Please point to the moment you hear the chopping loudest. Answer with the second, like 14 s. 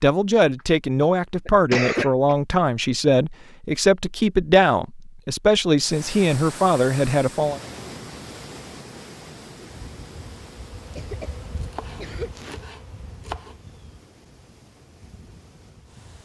13 s.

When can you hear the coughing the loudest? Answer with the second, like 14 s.
2 s.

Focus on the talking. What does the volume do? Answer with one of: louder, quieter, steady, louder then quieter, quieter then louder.
steady.